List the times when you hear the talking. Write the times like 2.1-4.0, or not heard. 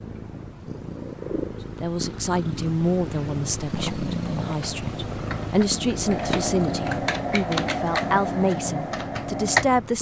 1.8-9.9.